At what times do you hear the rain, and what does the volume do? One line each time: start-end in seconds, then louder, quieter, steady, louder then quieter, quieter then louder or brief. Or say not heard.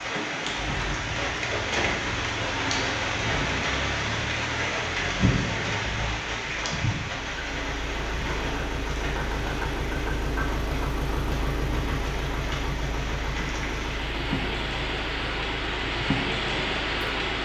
0.0-17.4 quieter then louder.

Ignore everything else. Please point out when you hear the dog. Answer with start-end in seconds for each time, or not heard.
not heard.